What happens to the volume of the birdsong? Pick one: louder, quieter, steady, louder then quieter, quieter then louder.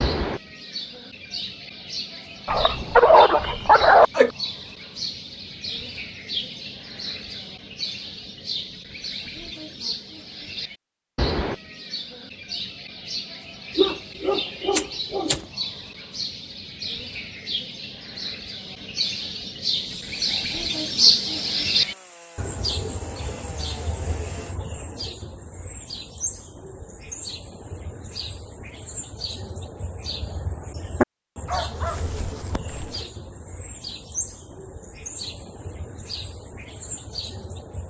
louder then quieter.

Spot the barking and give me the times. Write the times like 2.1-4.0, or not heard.
2.5-4.3, 13.8-15.4, 31.4-33.0.